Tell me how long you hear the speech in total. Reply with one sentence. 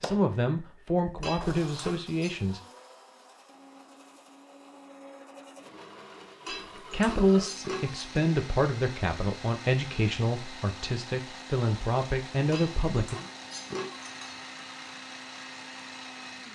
You can hear the speech for 9 seconds altogether.